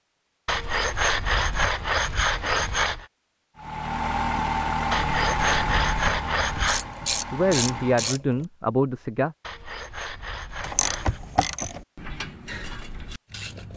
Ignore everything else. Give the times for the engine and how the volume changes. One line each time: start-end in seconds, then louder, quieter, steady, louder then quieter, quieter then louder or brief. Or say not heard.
3.5-8.2 quieter.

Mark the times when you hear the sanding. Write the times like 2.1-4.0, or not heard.
0.5-3.0, 4.9-6.9, 9.4-11.2.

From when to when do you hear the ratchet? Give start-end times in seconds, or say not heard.
6.7-8.4, 10.6-13.7.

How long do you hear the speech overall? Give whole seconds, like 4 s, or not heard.
2 s.